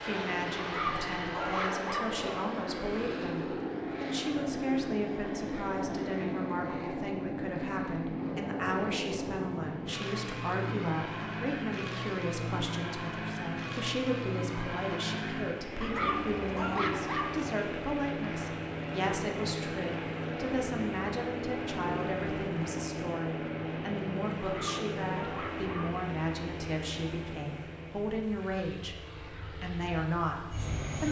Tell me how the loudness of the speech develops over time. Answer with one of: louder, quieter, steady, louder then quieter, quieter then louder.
steady.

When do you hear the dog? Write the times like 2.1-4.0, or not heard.
0.6-2.1, 15.8-17.4, 24.4-25.9.